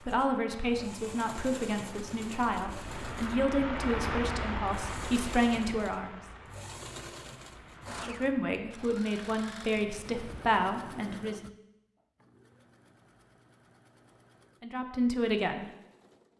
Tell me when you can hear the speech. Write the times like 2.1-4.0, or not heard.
0.0-6.2, 7.9-11.5, 14.6-15.7.